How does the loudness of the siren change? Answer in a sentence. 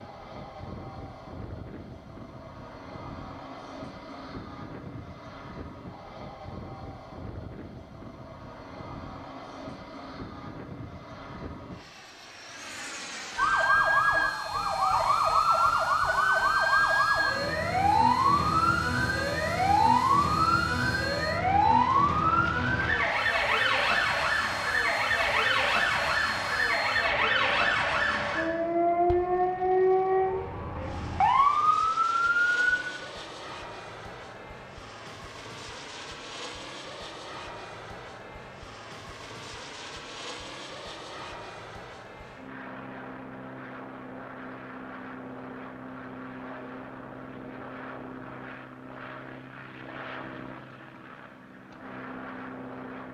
The loudness of the siren stays about the same.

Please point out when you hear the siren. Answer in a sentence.
The siren can be heard from 13.3 to 32.6 s.